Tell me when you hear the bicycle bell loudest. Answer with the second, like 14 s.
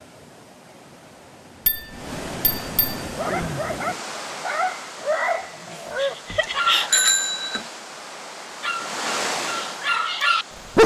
7 s.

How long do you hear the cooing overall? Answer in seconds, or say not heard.
not heard.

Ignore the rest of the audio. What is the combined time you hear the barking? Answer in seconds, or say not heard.
6 s.